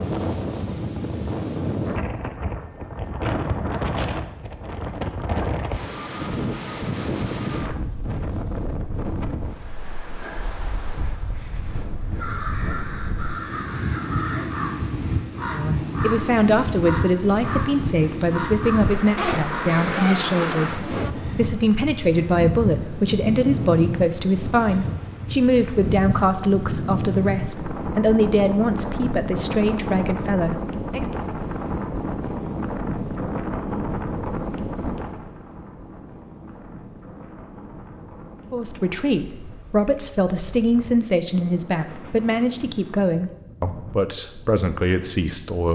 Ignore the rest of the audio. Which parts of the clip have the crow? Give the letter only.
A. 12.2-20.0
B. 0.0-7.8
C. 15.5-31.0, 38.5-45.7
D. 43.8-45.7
A.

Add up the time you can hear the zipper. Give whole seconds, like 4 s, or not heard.
2 s.